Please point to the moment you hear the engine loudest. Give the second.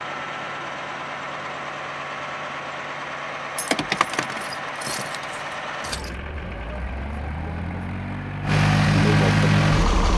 9 s.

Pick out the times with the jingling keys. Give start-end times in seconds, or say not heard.
3.5-6.2.